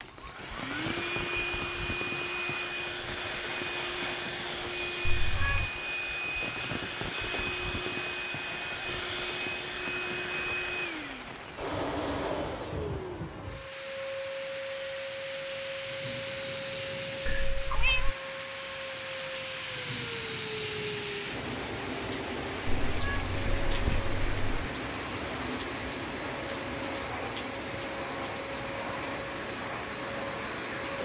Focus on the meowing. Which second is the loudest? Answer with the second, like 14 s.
18 s.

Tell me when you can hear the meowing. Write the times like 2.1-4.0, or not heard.
5.0-5.7, 17.2-18.1, 22.6-24.7.